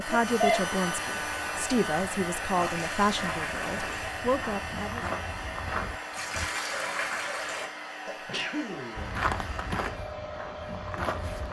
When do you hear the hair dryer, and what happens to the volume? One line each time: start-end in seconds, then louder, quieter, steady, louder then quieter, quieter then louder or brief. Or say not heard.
0.0-11.4 quieter.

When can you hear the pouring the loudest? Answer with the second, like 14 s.
7 s.